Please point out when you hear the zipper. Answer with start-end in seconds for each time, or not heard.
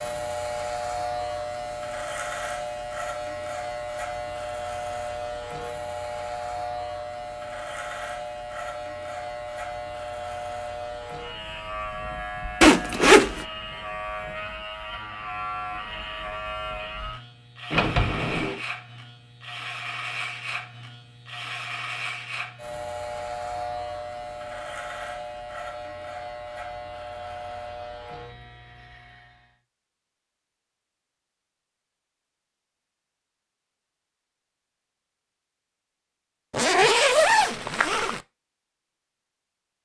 12.6-13.4, 36.5-38.2.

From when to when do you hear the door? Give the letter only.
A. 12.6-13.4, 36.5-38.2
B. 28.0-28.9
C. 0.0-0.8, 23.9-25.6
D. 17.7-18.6
D.